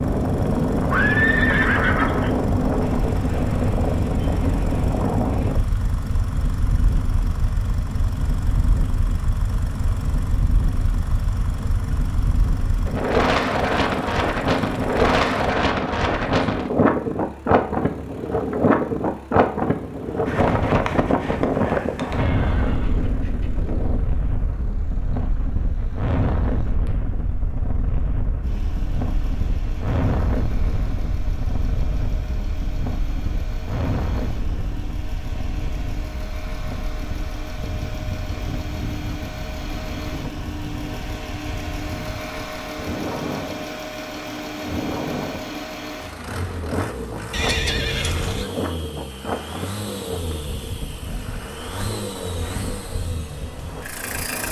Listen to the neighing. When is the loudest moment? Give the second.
1 s.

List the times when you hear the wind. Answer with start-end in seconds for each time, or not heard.
0.0-54.4.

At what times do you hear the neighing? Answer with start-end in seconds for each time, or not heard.
0.9-2.4, 22.1-24.1, 47.3-48.5.